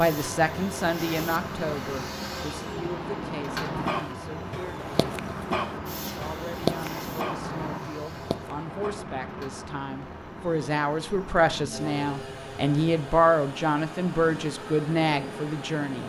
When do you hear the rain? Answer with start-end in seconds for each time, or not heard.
0.0-16.0.